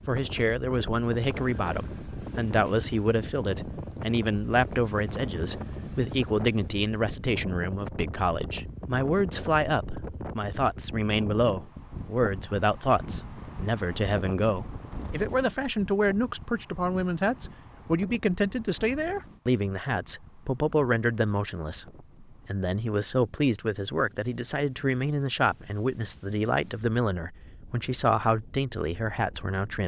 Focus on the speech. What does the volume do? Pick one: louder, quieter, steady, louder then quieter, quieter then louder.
steady.